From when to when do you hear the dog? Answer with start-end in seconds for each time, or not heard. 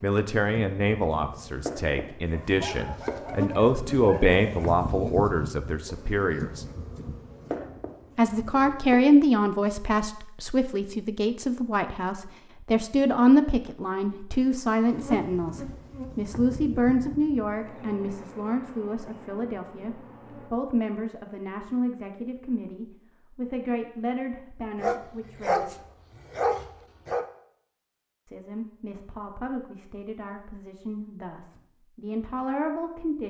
2.3-4.7, 24.8-27.2.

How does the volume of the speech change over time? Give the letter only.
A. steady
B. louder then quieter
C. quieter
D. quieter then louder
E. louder
C.